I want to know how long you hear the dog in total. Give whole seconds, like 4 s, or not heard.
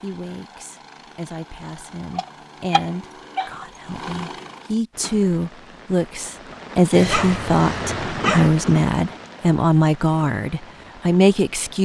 3 s.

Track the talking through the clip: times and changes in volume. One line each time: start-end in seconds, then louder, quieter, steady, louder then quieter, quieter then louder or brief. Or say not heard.
0.0-11.8 louder.